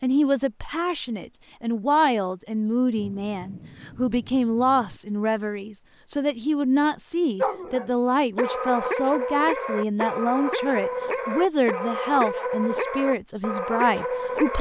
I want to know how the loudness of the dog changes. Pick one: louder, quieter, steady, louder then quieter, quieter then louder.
steady.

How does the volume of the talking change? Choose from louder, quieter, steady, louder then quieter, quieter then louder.
steady.